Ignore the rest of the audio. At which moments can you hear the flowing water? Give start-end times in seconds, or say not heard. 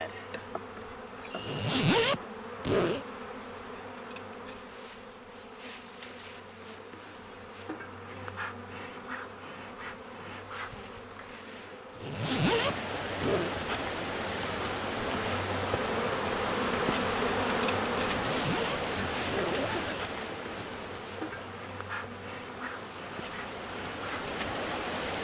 12.3-25.2.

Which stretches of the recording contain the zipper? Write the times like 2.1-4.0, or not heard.
1.4-3.0, 11.9-13.6, 18.1-20.7.